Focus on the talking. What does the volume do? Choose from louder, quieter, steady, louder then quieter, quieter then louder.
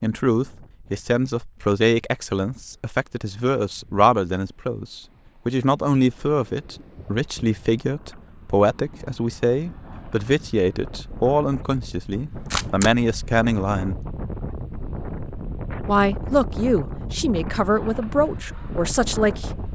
steady.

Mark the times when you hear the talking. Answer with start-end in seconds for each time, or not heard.
0.0-14.0, 15.8-19.6.